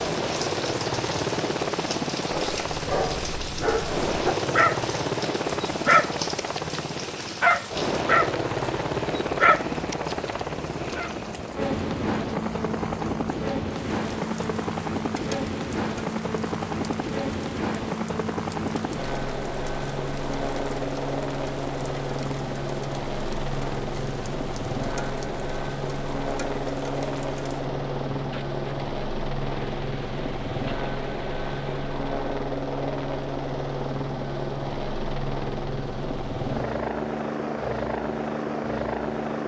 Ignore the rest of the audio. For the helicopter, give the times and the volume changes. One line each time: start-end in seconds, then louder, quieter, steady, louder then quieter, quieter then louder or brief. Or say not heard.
0.0-39.4 steady.